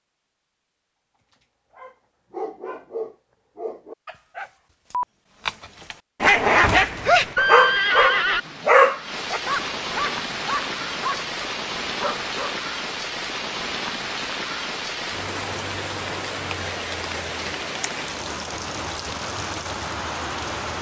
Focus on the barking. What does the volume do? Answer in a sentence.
The loudness of the barking goes up, then down.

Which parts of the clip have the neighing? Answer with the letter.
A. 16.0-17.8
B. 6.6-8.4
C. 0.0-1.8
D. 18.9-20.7
B.